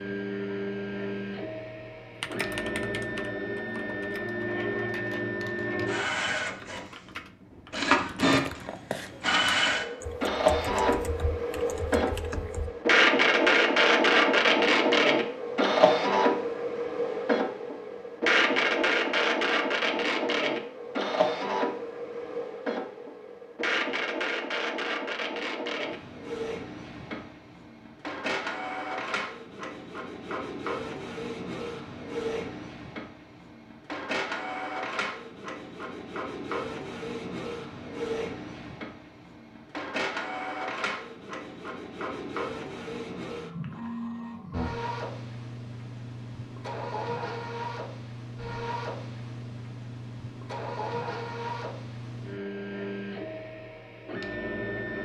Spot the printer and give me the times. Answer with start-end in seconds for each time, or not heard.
0.0-54.9.